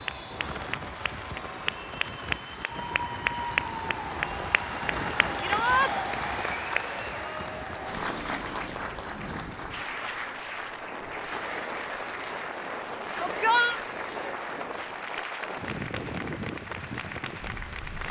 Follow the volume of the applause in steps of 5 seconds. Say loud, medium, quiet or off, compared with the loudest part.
loud, loud, medium, medium.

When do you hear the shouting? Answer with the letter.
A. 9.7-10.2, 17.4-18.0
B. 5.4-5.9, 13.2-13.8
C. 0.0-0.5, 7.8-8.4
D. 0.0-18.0
B.